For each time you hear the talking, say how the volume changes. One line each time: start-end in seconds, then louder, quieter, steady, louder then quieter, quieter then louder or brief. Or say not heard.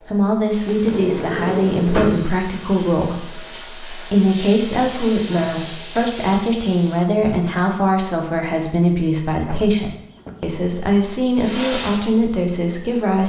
0.1-13.2 steady.